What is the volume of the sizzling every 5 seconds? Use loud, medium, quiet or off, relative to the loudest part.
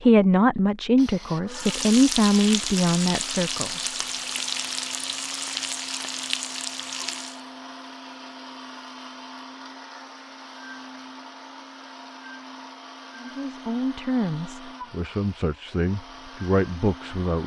loud, loud, off, off.